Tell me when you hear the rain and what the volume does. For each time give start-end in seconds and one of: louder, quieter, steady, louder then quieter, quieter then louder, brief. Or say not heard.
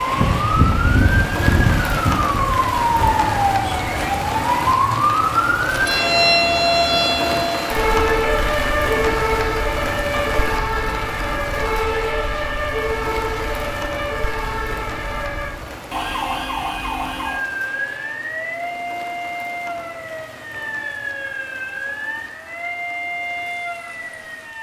0.0-24.5 quieter.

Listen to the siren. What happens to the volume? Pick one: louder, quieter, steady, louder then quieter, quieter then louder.
quieter.